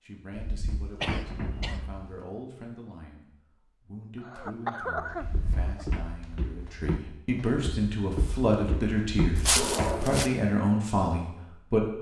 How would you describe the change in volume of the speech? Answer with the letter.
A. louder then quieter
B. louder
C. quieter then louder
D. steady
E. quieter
B.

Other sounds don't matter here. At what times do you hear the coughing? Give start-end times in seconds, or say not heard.
1.0-1.9, 4.2-5.8, 9.6-10.2.